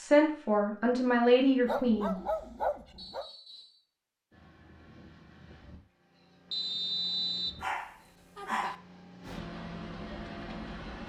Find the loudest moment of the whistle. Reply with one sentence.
The volume of the whistle peaks at 7 seconds.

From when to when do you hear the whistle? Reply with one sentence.
You can hear the whistle from 3.0 to 3.8 s and from 6.5 to 7.6 s.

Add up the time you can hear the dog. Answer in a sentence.
You can hear the dog for 3 seconds altogether.